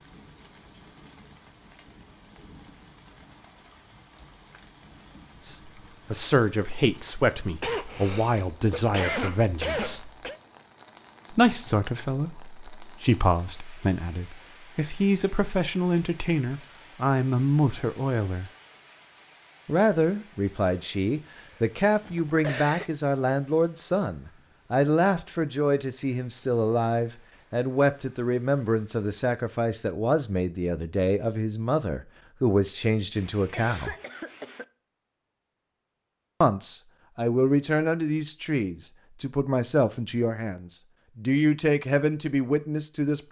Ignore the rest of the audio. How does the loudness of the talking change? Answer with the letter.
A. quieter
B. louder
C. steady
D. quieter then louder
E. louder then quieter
C.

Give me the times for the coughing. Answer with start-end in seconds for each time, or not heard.
7.6-10.4, 21.9-22.9, 33.1-34.6.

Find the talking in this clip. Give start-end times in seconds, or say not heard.
5.4-10.1, 11.3-18.5, 19.6-34.0, 36.4-43.2.